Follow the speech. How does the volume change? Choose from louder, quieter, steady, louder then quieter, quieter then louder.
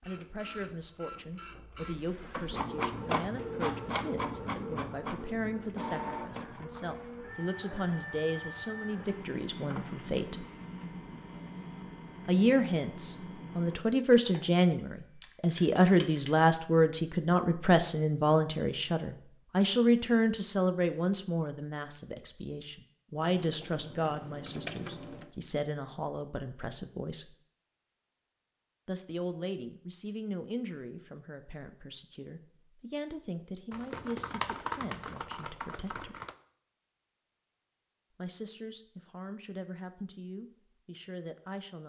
louder then quieter.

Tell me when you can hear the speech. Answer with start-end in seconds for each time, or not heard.
0.1-10.4, 12.2-27.4, 28.9-36.2, 38.1-41.8.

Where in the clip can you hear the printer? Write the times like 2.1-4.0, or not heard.
0.0-13.8.